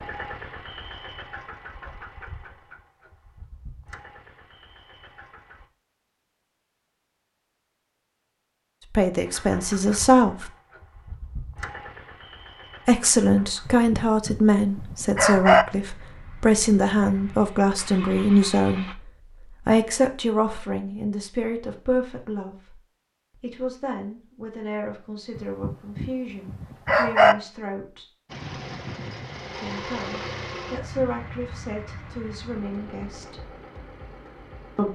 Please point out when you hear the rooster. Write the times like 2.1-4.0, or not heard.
13.7-15.7, 25.4-27.4.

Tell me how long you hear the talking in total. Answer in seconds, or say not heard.
20 s.